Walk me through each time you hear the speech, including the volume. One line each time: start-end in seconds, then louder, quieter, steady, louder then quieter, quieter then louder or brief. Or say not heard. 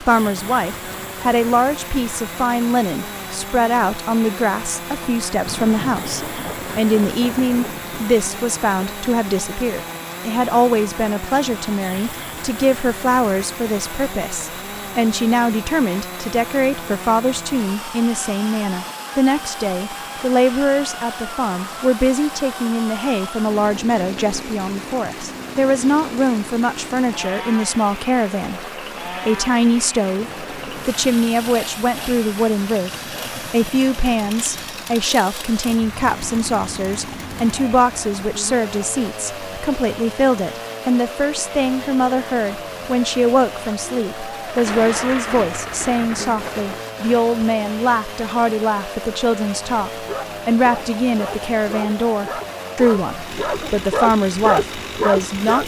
0.0-55.6 steady.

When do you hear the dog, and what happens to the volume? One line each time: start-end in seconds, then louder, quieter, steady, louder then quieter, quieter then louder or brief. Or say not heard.
49.9-55.6 louder.